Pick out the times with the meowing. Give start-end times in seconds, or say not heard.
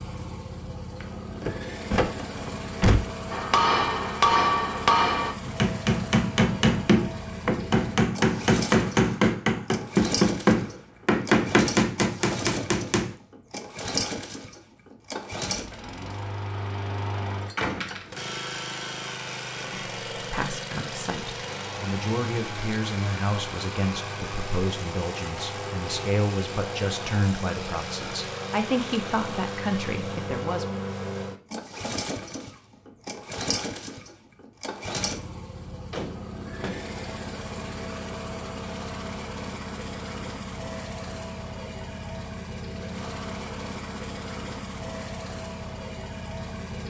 not heard.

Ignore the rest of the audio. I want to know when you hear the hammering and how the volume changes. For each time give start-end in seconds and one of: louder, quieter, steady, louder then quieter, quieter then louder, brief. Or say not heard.
3.3-13.2 steady.